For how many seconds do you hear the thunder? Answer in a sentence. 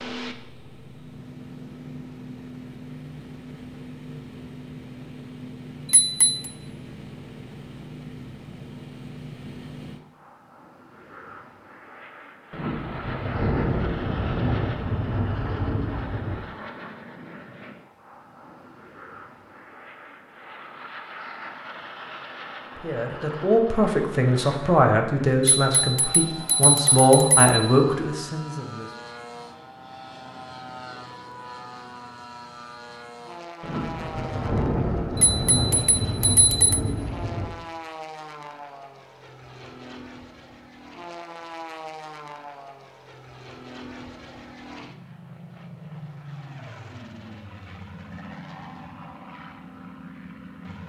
You can hear the thunder for 8 seconds altogether.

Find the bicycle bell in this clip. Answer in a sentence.
The bicycle bell can be heard from 5.8 to 6.5 s, from 25.4 to 27.8 s and from 35.1 to 36.8 s.